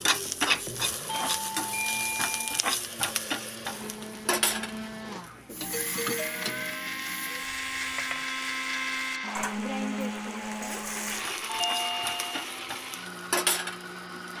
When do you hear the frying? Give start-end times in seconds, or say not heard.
0.0-14.3.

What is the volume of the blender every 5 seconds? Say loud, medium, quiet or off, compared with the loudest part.
medium, loud, loud.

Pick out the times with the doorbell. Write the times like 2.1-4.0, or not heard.
1.1-2.6, 5.6-6.8, 11.4-12.4.